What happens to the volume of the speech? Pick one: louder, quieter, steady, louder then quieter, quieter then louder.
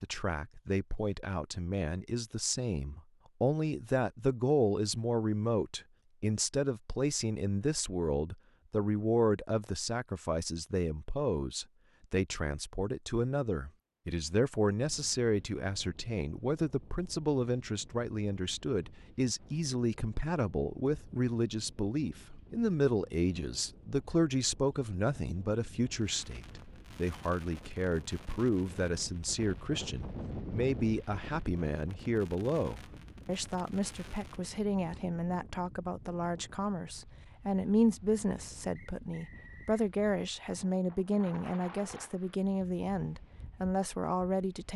steady.